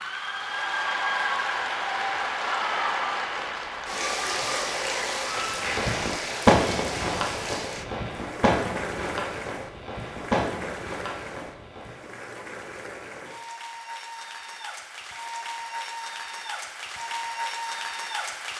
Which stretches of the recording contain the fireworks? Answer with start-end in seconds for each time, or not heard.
5.7-12.1.